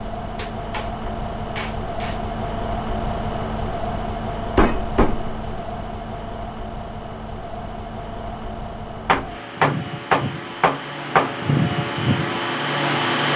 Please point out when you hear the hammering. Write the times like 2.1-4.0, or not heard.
0.3-2.2, 4.5-5.7, 9.1-11.3.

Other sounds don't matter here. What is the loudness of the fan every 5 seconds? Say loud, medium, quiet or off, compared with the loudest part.
medium, medium, loud.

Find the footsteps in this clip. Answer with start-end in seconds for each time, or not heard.
not heard.